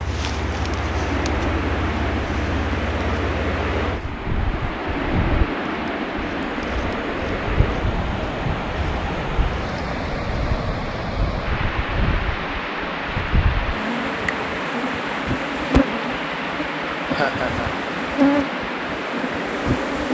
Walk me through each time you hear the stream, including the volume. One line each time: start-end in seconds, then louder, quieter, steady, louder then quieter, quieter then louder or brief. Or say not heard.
0.0-20.1 steady.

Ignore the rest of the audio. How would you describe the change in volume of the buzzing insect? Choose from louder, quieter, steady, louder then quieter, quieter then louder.
louder.